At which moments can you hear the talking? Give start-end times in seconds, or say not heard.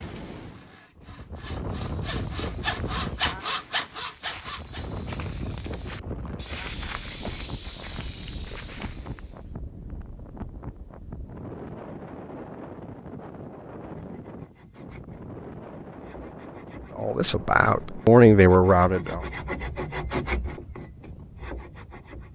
16.9-19.2.